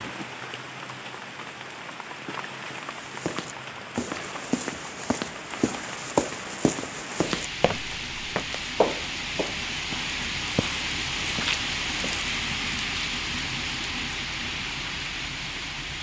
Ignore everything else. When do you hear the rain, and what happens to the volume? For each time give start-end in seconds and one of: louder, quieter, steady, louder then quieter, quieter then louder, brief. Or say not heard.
0.0-15.9 louder.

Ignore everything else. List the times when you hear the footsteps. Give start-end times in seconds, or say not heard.
2.9-12.3.